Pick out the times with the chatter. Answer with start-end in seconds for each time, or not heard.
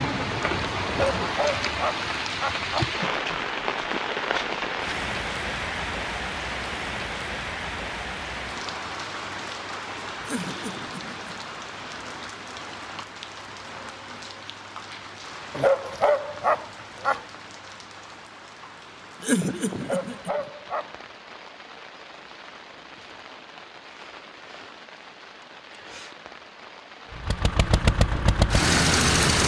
not heard.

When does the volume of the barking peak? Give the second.
16 s.